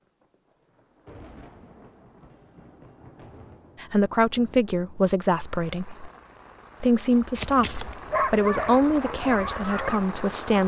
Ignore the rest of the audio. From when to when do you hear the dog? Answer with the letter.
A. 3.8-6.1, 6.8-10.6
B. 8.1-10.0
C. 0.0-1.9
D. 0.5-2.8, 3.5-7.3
B.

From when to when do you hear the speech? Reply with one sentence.
The speech can be heard from 3.8 to 6.1 s and from 6.8 to 10.6 s.